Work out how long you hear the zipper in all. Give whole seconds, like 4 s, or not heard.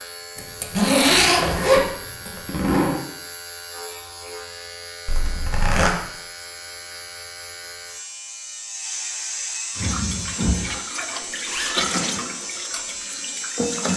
4 s.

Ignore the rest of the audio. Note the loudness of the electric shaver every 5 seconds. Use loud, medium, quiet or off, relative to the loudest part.
medium, loud, loud.